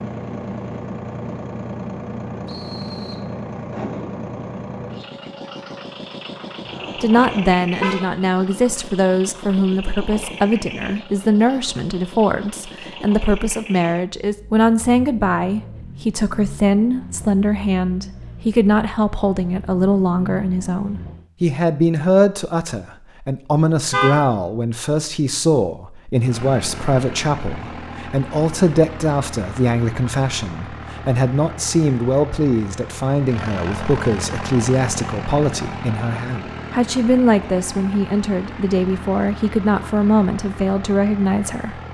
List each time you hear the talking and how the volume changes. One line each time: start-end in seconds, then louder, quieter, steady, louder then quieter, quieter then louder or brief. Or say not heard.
7.0-41.8 steady.